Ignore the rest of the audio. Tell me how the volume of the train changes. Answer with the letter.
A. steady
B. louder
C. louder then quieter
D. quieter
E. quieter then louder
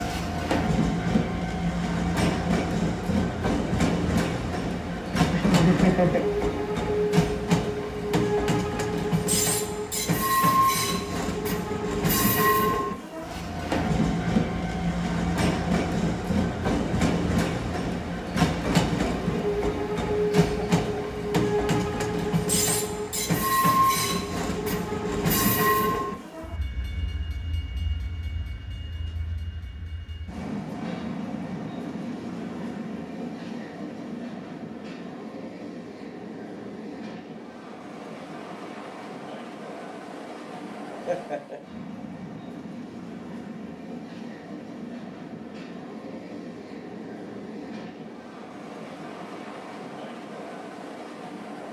D.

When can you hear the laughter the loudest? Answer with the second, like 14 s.
6 s.